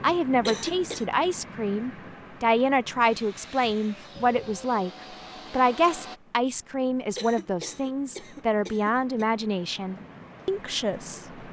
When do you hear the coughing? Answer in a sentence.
The coughing can be heard from 0.5 to 1.1 s and from 7.2 to 9.2 s.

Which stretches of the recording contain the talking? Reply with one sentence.
You can hear the talking from 0.0 to 4.9 s and from 5.5 to 11.2 s.